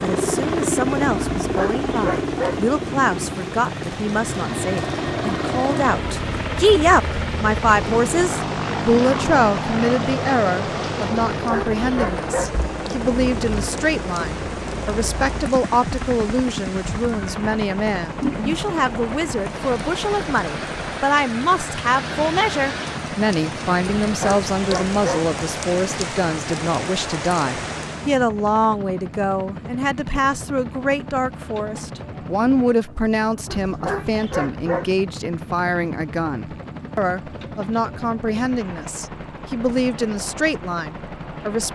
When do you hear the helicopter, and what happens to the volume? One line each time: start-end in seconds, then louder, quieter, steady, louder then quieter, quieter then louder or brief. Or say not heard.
0.0-41.7 quieter.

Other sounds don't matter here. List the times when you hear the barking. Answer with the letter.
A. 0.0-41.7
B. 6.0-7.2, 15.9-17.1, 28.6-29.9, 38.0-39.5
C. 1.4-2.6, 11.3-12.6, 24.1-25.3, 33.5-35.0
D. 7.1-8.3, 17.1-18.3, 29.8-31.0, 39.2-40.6
C.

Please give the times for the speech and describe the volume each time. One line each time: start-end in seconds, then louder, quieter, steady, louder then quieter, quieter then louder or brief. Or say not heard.
0.0-41.7 steady.